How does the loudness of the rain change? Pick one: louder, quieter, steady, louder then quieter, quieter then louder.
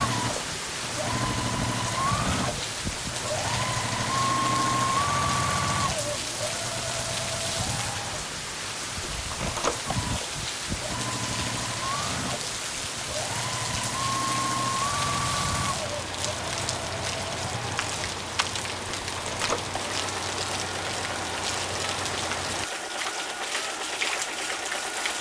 steady.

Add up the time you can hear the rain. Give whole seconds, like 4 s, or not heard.
25 s.